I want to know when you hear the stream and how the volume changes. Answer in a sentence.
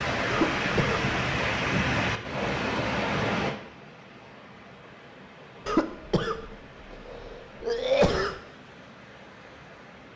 You can hear the stream from 0.0 to 10.1 s, getting quieter.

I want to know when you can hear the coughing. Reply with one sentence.
You can hear the coughing from 0.3 to 1.1 s and from 5.7 to 8.4 s.